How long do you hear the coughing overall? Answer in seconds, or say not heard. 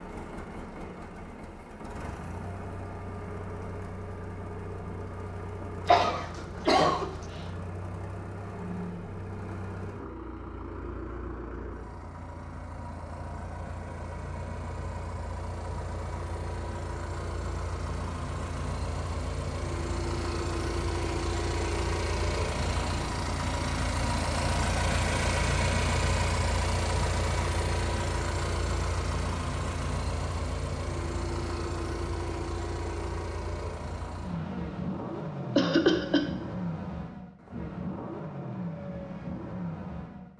2 s.